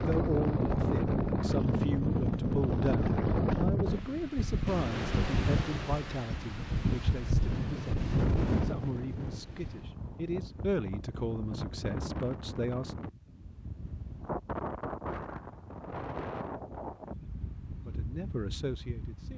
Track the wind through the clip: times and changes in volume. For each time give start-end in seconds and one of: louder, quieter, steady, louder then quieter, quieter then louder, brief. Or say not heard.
0.0-19.3 quieter.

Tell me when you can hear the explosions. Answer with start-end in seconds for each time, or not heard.
not heard.